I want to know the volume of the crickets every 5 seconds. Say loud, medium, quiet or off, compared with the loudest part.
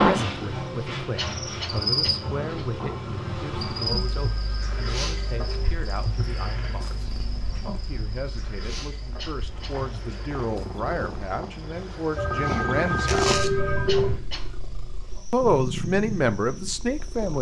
loud, medium, quiet, quiet.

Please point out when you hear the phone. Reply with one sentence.
The phone can be heard from 3.9 to 5.8 s and from 12.2 to 14.2 s.